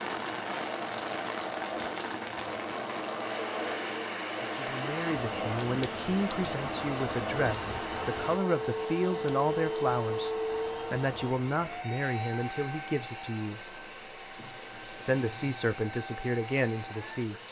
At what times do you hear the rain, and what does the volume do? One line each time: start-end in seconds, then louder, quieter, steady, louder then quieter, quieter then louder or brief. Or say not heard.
0.0-17.4 quieter.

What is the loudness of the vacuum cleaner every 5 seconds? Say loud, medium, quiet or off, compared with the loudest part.
loud, loud, loud, medium.